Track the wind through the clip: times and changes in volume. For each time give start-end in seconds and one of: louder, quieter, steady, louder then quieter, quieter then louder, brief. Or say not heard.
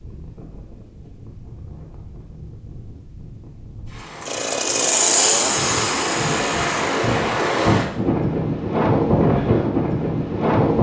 0.0-10.7 louder.